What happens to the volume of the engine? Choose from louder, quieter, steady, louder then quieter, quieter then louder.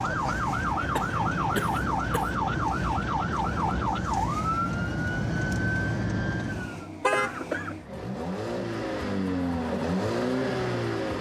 louder.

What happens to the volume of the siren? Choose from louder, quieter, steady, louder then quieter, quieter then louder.
steady.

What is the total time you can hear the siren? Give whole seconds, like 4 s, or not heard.
7 s.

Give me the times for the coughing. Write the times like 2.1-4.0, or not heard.
0.9-2.4, 7.1-7.8.